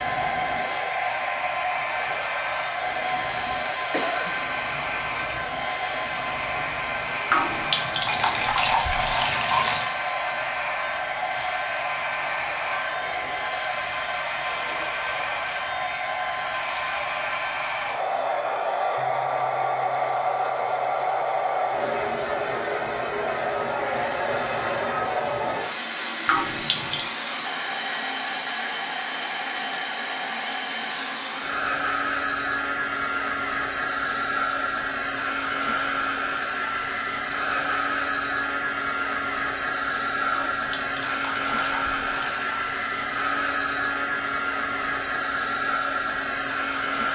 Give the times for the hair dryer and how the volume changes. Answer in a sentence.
You can hear the hair dryer from 0.0 to 47.0 s, at a steady volume.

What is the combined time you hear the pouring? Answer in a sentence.
The pouring can be heard for 6 seconds in total.